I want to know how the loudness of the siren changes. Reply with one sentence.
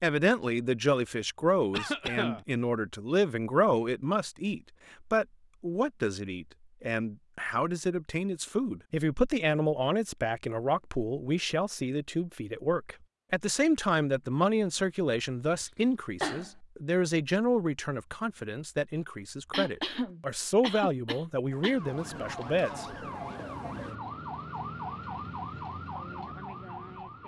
The volume of the siren stays about the same.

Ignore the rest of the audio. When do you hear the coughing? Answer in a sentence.
The coughing can be heard from 1.7 to 2.5 s, from 15.6 to 16.5 s and from 19.5 to 21.8 s.